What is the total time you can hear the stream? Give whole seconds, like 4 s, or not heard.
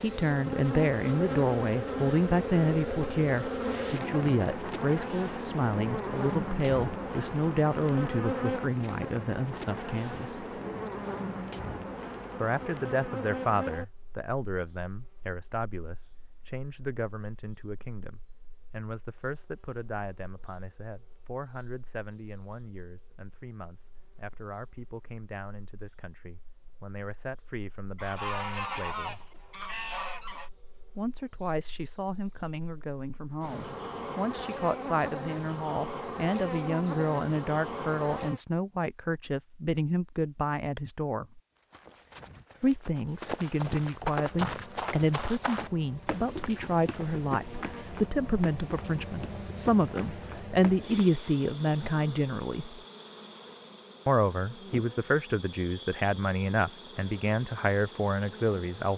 not heard.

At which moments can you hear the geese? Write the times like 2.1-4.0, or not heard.
27.9-30.5.